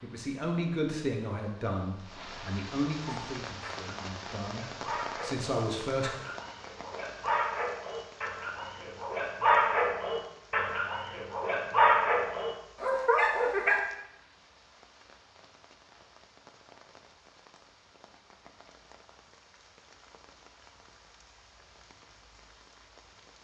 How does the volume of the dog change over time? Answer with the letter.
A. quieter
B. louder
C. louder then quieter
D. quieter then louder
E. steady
B.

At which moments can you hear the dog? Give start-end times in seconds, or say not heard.
3.0-13.8.